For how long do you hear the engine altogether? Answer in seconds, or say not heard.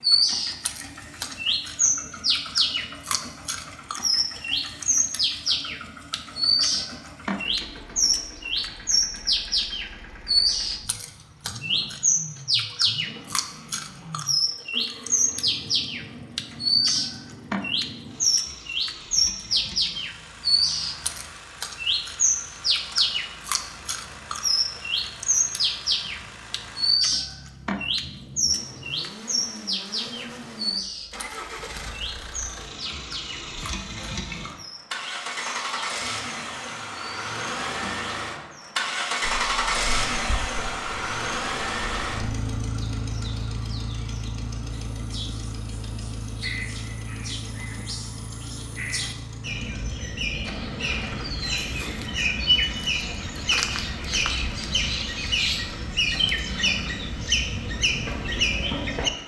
59 s.